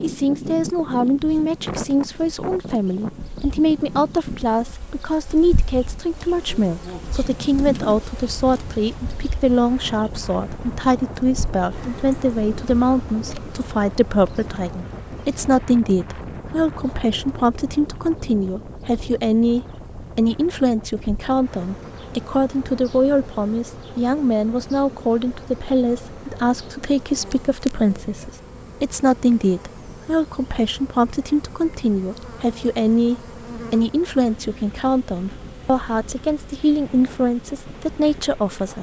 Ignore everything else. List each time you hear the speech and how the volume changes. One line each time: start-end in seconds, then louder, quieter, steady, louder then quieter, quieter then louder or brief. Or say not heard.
0.0-38.7 steady.